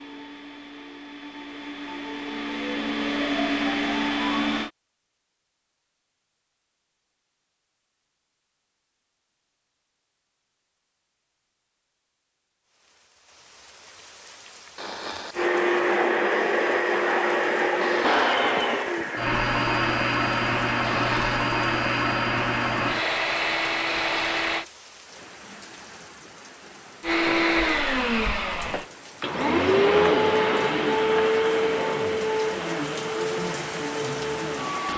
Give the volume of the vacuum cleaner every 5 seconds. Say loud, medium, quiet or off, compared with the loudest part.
medium, off, off, loud, loud, loud, loud.